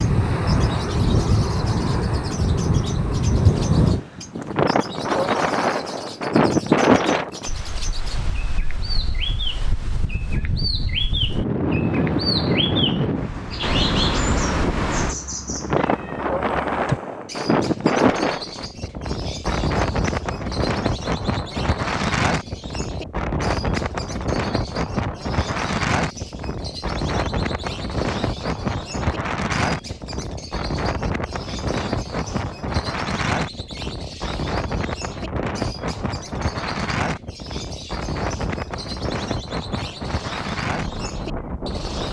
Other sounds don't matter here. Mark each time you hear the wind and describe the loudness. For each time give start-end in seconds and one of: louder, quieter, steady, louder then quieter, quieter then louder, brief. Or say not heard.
0.0-42.0 quieter.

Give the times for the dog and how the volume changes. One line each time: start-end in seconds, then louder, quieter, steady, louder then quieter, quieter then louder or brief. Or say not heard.
not heard.